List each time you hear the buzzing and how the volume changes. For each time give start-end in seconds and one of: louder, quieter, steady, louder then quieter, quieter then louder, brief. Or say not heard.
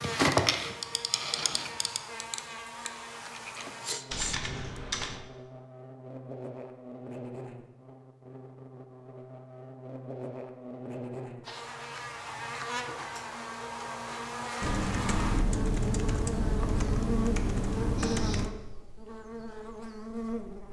0.0-20.6 louder.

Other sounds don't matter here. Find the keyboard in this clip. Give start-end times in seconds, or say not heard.
0.0-5.2, 14.6-18.5.